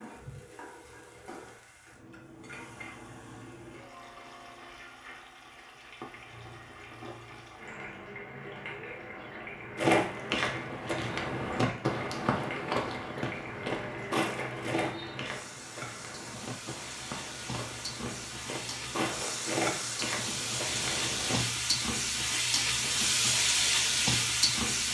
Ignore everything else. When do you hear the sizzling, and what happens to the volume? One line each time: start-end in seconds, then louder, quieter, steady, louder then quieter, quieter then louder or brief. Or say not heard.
0.0-24.8 louder.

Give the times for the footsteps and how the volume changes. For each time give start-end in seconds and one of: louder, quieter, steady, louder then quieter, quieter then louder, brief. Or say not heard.
9.8-21.4 quieter then louder.